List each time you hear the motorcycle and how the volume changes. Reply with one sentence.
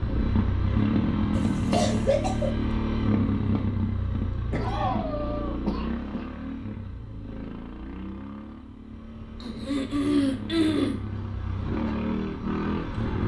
The motorcycle can be heard from 0.0 to 13.2 s, getting quieter then louder.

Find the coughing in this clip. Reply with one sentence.
The coughing can be heard from 1.4 to 2.5 s, from 4.5 to 6.2 s and from 9.4 to 11.0 s.